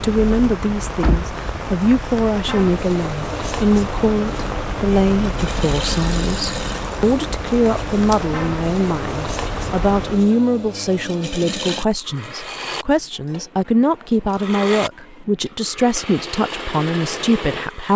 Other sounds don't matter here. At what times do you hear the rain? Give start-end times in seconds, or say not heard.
0.0-10.3.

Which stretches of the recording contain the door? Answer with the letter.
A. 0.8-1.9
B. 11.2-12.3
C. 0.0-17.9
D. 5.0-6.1
A.